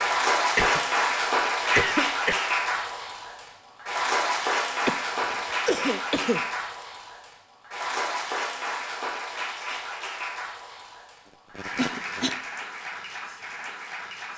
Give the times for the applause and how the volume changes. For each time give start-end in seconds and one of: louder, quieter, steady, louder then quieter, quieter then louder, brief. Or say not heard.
0.0-14.3 quieter.